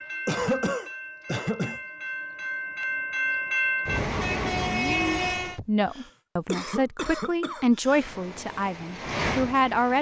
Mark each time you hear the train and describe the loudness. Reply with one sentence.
You can hear the train from 0.0 to 5.6 s, getting louder; and briefly from 7.8 to 9.9 s.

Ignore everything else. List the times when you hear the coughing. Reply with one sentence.
The coughing can be heard from 0.2 to 1.8 s and from 5.5 to 8.1 s.